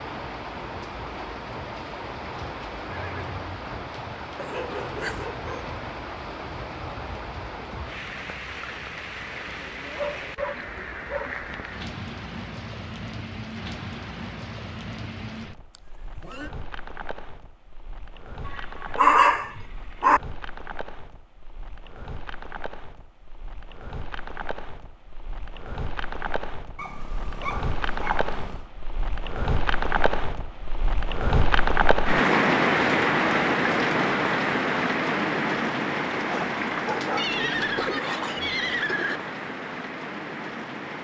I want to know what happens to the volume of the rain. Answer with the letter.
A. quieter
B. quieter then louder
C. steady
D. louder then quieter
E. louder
B.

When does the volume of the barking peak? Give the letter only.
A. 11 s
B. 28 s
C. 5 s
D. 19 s
D.